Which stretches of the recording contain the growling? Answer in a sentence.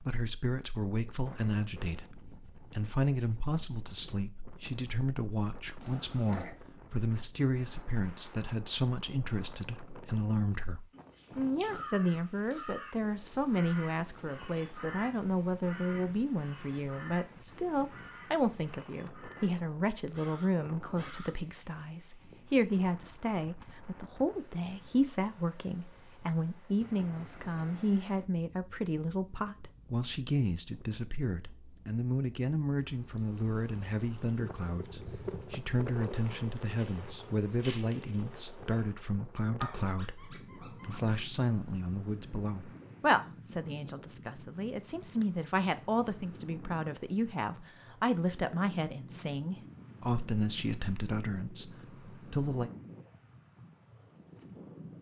You can hear the growling from 5.8 to 6.5 s and from 39.6 to 41.2 s.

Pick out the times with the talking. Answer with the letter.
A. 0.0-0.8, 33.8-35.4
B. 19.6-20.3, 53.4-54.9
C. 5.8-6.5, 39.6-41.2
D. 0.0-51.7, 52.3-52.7
D.